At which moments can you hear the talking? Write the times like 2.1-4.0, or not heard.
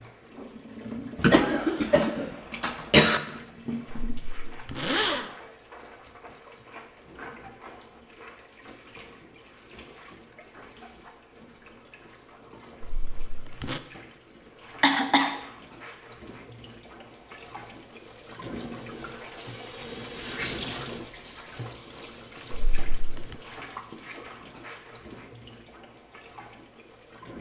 not heard.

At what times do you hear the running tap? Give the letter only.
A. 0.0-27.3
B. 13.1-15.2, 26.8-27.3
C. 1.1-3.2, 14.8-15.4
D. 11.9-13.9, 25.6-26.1
A.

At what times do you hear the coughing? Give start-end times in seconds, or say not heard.
1.1-3.2, 14.8-15.4.